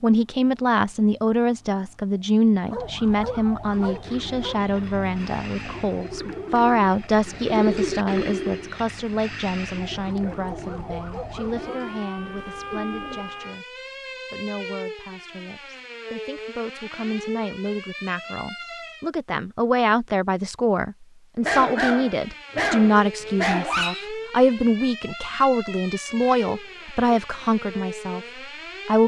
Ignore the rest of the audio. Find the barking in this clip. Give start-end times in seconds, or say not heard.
2.7-4.6, 10.2-11.9, 21.4-24.1.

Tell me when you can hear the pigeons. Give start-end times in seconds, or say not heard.
3.6-13.3.